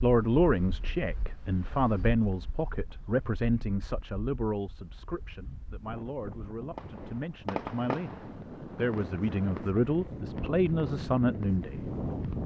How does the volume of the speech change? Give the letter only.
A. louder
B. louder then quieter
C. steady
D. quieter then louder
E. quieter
D.